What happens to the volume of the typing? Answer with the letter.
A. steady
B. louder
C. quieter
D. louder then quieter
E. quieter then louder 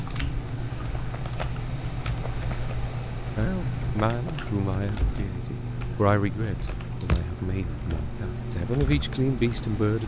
A.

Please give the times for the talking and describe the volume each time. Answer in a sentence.
You can hear the talking from 3.4 to 10.0 s, getting quieter then louder.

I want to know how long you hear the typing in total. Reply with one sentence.
You can hear the typing for 10 seconds altogether.